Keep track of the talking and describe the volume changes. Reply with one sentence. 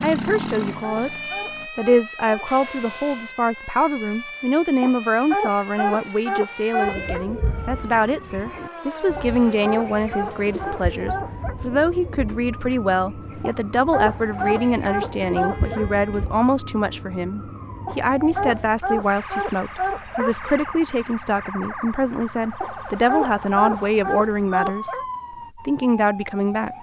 The volume of the talking stays about the same.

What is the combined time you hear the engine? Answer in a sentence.
The engine can be heard for 2 seconds in total.